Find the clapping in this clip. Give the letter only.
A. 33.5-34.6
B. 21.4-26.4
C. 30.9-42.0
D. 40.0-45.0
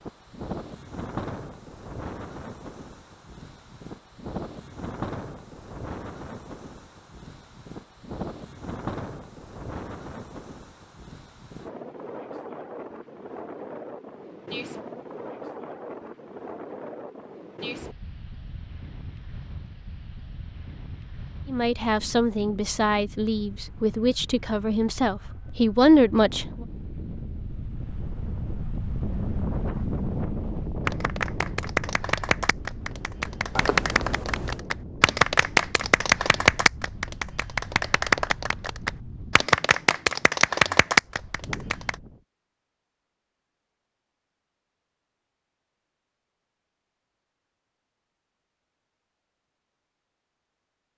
C.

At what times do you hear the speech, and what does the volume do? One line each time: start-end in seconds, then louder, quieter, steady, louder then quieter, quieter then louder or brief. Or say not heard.
21.4-26.4 louder.